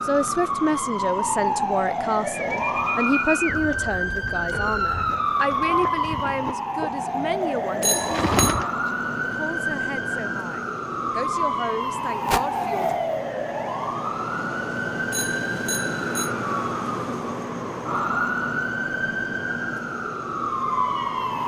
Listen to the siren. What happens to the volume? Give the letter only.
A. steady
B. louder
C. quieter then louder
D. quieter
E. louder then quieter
A.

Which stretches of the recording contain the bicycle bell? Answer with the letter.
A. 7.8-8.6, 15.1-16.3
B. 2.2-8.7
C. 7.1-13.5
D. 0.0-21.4
A.